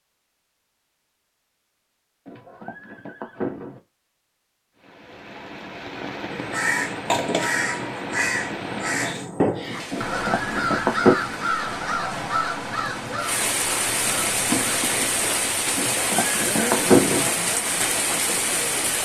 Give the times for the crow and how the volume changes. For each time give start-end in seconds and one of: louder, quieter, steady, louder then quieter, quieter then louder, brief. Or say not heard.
6.3-15.3 quieter.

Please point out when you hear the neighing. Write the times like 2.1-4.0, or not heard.
2.2-3.8, 9.9-11.2, 15.8-17.3.